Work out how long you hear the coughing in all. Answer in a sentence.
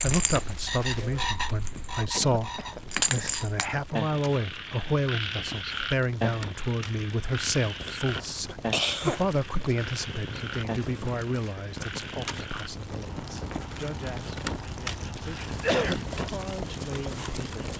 The coughing can be heard for 3 seconds in total.